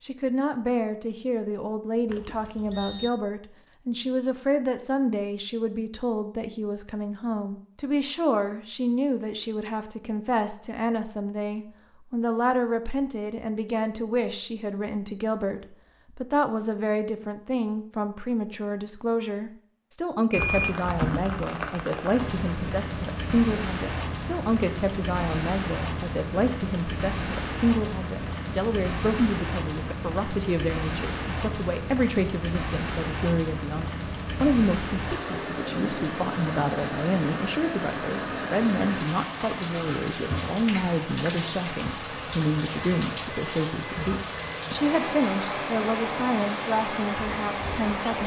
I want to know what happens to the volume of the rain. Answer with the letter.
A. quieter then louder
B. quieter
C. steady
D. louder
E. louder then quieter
C.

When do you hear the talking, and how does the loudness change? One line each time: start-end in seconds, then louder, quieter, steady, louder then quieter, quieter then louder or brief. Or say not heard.
0.0-48.2 steady.